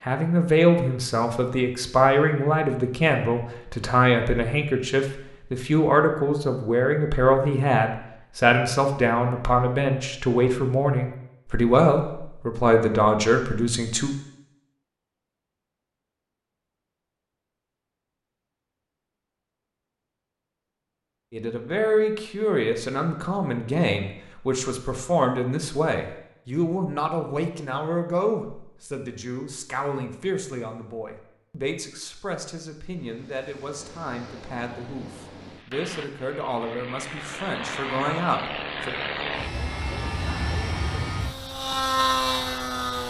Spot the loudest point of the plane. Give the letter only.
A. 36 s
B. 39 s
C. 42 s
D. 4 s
C.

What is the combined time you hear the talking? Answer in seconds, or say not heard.
32 s.